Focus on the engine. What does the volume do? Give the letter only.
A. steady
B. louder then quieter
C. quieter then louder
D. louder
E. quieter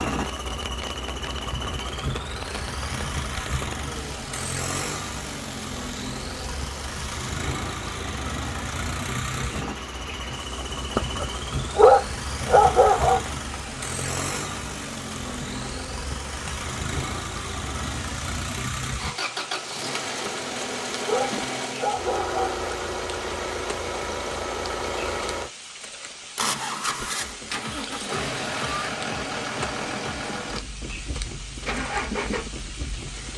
A.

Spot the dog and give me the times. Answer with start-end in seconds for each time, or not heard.
10.9-13.2, 20.2-22.7.